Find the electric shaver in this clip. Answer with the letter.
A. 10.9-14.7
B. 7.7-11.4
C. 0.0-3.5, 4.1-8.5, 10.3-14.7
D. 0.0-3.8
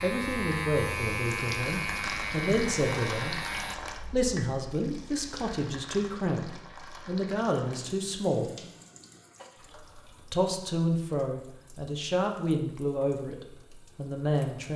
D.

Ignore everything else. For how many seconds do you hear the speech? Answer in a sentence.
You can hear the speech for 12 seconds altogether.